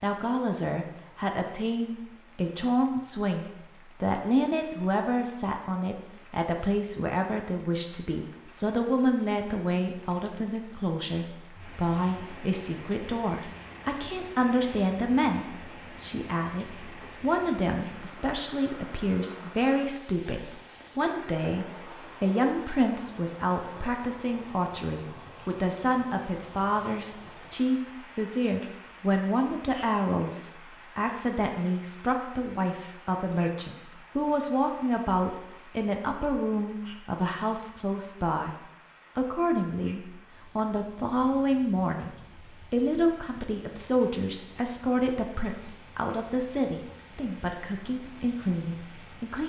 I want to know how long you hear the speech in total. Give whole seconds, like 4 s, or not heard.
48 s.